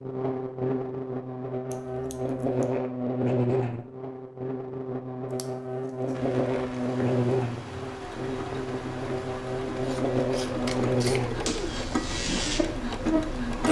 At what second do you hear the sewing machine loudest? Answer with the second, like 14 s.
13 s.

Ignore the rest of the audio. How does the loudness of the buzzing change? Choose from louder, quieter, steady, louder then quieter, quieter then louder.
steady.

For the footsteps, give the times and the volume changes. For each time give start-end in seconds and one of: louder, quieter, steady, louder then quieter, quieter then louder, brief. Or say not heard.
not heard.